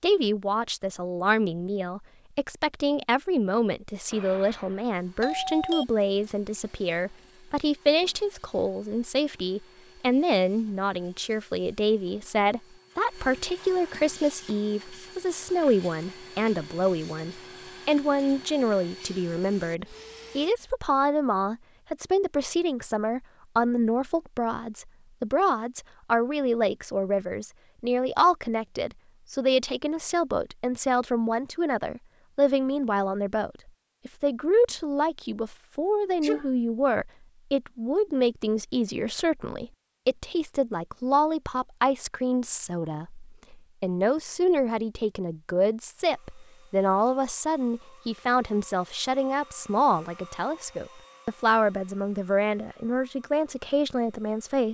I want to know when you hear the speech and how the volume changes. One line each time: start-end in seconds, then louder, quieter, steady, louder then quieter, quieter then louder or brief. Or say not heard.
0.0-54.6 steady.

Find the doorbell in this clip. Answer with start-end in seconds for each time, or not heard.
4.1-5.8.